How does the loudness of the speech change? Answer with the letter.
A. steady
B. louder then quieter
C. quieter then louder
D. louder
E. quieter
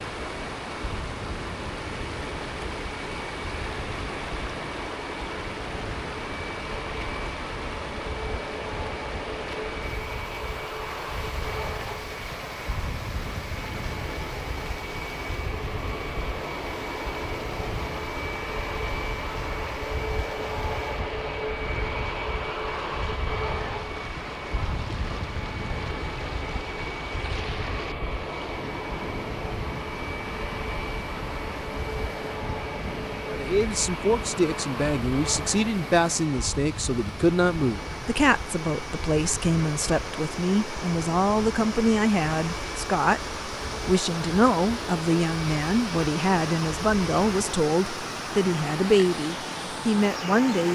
A.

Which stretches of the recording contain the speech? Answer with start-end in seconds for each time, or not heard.
33.3-50.7.